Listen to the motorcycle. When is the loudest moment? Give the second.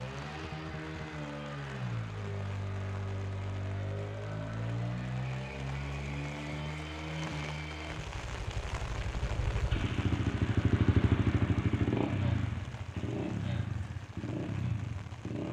11 s.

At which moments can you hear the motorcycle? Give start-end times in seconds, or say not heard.
0.0-15.4.